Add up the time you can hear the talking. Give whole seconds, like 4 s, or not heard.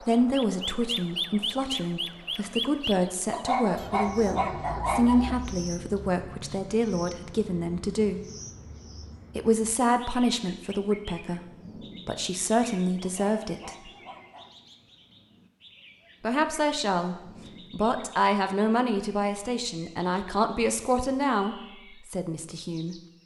19 s.